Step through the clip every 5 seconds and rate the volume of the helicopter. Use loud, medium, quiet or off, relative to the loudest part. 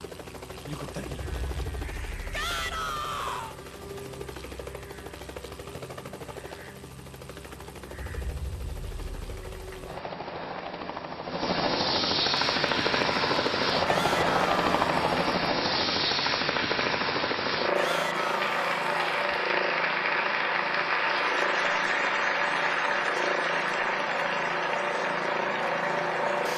quiet, quiet, loud, loud, medium, loud.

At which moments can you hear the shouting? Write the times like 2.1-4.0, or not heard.
2.3-3.5, 13.8-15.4, 17.8-19.3.